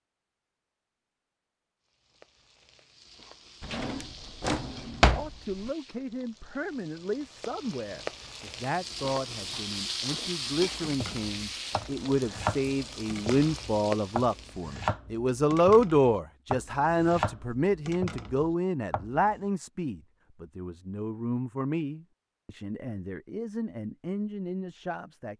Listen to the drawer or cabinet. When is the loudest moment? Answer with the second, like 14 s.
5 s.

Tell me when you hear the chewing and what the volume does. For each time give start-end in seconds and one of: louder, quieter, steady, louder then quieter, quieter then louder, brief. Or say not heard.
not heard.